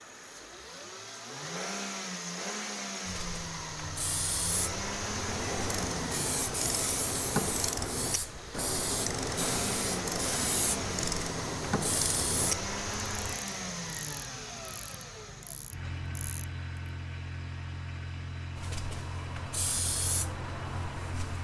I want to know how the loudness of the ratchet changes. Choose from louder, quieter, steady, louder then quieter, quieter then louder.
quieter.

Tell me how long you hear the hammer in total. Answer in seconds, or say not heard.
not heard.